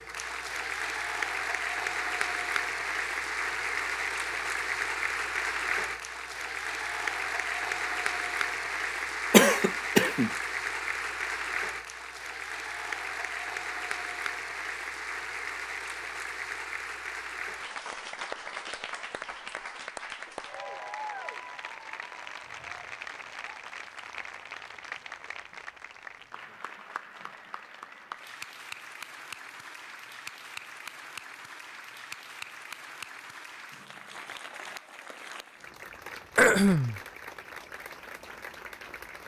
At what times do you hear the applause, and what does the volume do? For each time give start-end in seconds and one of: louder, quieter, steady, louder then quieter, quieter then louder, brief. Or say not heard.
0.0-39.2 quieter.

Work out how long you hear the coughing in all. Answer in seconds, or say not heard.
2 s.